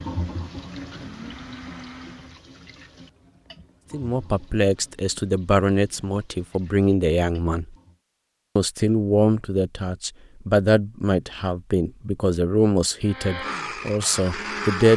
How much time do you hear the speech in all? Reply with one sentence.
The speech can be heard for 10 seconds in total.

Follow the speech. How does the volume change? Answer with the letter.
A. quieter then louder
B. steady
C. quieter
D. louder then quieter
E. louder
B.